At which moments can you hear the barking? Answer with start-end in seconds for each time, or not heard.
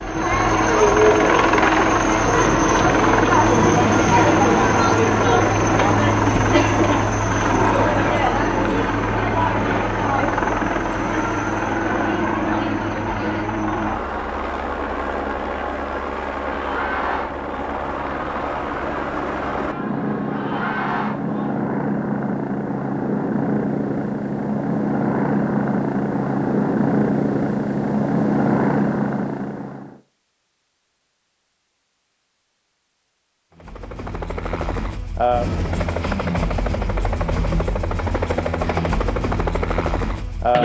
not heard.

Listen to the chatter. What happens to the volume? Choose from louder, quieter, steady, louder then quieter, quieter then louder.
quieter.